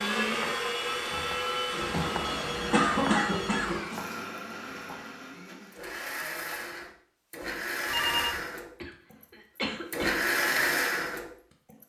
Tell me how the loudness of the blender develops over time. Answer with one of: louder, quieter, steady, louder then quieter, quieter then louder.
quieter then louder.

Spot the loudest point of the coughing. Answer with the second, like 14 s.
3 s.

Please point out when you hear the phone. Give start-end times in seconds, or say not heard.
1.8-3.8, 7.8-8.4.